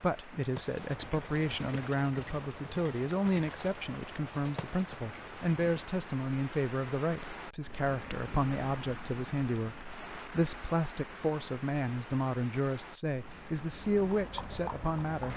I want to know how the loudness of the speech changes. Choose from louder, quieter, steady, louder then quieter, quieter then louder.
steady.